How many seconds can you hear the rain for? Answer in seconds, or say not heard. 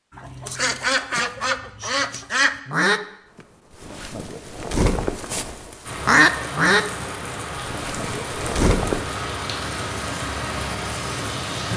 6 s.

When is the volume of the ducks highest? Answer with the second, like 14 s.
6 s.